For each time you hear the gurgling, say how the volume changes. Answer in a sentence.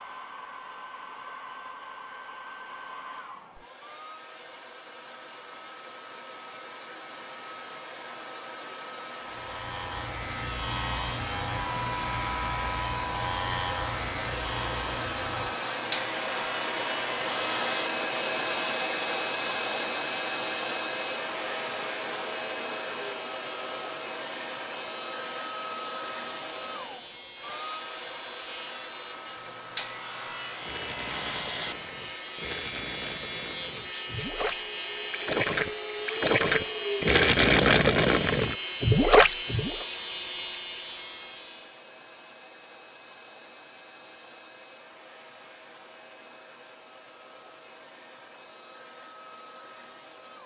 You can hear the gurgling from 30.6 to 39.9 s, getting louder.